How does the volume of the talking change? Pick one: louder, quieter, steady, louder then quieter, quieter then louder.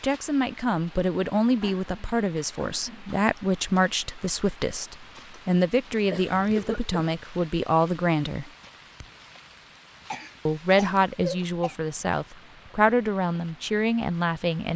steady.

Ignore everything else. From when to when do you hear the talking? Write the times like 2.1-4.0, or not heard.
0.0-8.5, 10.4-14.7.